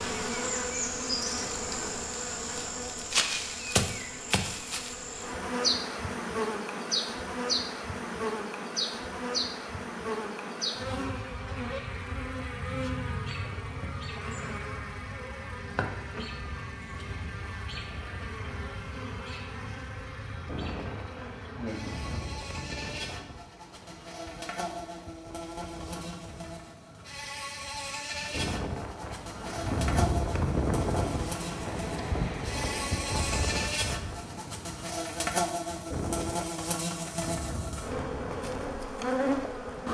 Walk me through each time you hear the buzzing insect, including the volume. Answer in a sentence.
The buzzing insect can be heard from 0.0 to 39.8 s, getting quieter then louder.